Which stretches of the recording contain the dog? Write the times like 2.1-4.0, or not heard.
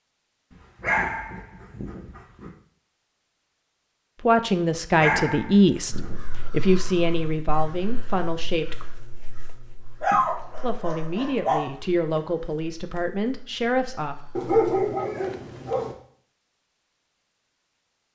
0.5-2.5, 4.9-6.2, 10.0-11.7, 14.3-15.9.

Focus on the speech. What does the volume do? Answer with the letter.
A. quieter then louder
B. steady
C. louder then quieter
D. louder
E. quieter
E.